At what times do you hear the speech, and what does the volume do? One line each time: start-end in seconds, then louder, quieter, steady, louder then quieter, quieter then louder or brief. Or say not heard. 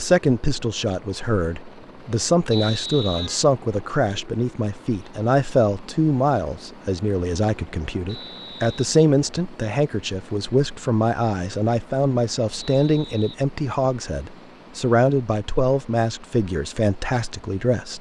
0.0-17.9 steady.